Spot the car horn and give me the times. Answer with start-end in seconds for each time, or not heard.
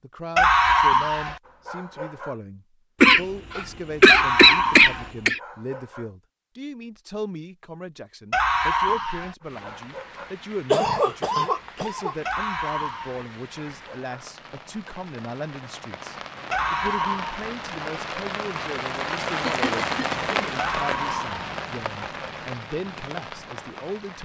not heard.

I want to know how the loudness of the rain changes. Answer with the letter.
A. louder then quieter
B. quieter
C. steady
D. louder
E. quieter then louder
A.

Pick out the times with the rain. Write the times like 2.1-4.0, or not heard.
9.4-24.2.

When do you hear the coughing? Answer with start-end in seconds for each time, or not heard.
3.0-5.4, 10.7-12.2, 19.4-20.2.